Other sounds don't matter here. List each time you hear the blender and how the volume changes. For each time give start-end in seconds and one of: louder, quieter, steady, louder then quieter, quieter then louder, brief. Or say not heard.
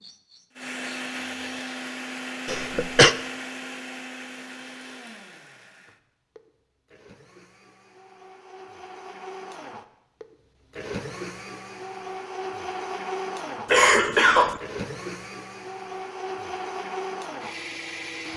0.0-18.3 quieter then louder.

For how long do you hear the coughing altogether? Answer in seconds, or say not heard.
2 s.